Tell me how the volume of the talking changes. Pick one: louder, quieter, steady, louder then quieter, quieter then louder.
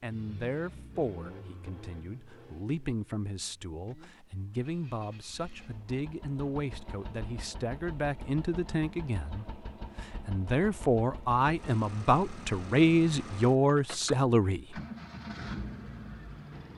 louder.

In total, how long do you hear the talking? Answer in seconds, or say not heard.
15 s.